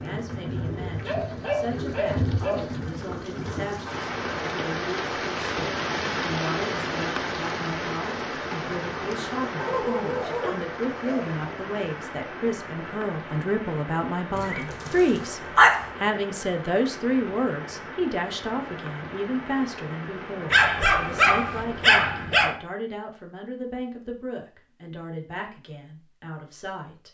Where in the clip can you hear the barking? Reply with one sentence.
You can hear the barking from 1.1 to 2.8 s, from 9.6 to 11.3 s, from 14.3 to 15.9 s and from 20.5 to 22.6 s.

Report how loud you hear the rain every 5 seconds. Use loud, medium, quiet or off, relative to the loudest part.
loud, loud, medium, medium, medium, off.